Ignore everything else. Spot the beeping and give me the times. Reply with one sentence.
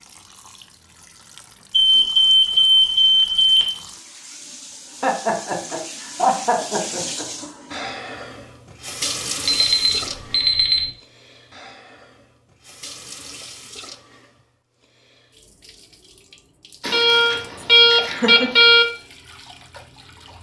You can hear the beeping from 1.7 to 3.6 s, from 9.4 to 10.8 s and from 16.8 to 18.9 s.